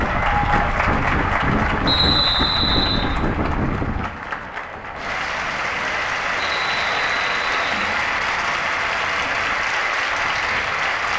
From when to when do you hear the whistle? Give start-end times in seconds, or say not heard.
1.9-3.1, 6.3-8.0.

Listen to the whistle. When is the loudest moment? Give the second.
2 s.